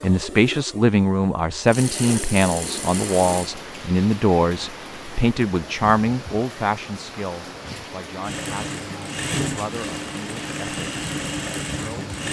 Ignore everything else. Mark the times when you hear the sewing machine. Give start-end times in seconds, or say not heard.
0.0-3.5, 8.2-12.2.